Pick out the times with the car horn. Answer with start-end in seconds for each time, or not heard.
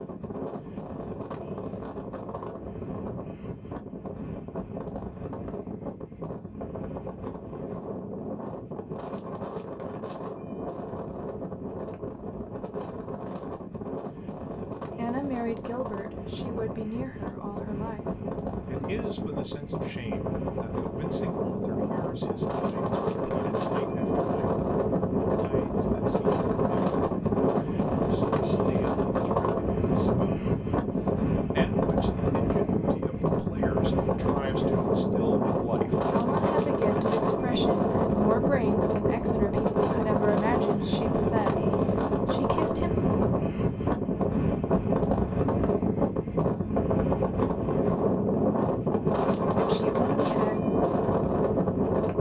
not heard.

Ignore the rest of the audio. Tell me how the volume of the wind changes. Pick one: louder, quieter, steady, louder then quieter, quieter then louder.
louder.